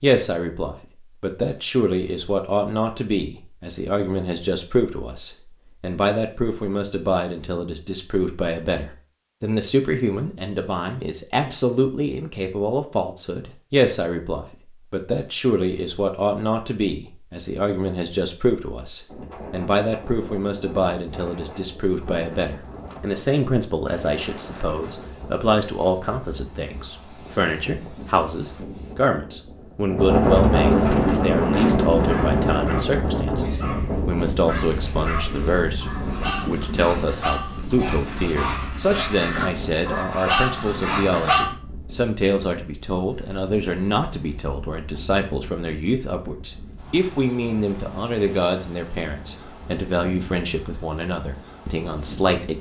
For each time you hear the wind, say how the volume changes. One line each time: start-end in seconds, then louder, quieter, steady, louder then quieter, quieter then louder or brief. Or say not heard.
19.1-52.5 louder then quieter.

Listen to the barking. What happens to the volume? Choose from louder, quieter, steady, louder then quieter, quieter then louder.
louder.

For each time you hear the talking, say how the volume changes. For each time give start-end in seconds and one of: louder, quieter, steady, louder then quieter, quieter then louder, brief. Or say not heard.
0.0-52.5 steady.